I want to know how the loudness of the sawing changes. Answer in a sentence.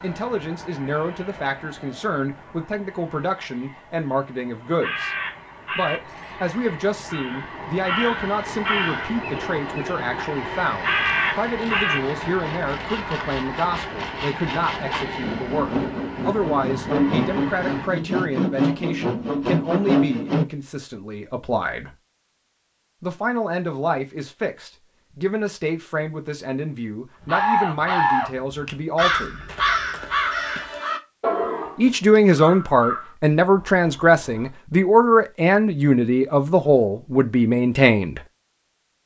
The loudness of the sawing goes up.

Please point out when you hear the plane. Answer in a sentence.
The plane can be heard from 0.0 to 17.9 s.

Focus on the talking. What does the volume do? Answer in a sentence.
The volume of the talking goes up.